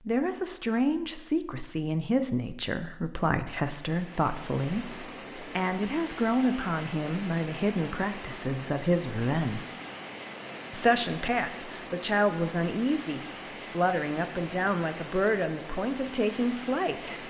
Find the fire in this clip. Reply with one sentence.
The fire can't be heard in this clip.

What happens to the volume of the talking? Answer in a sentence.
The loudness of the talking stays about the same.